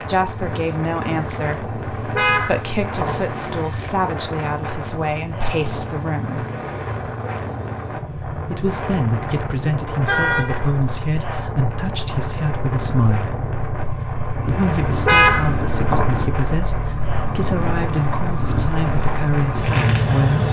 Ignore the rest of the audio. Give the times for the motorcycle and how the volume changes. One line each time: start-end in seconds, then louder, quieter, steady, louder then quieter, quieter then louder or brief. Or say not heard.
0.0-20.4 louder.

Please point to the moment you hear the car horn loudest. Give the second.
15 s.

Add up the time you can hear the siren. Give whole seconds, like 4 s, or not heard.
not heard.